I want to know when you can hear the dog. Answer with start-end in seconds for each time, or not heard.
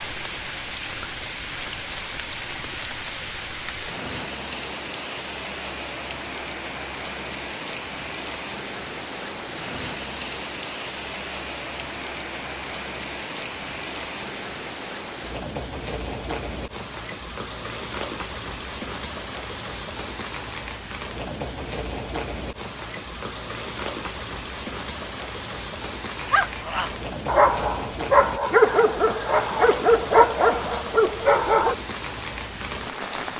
26.2-31.8.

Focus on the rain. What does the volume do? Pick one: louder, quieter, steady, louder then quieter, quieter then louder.
steady.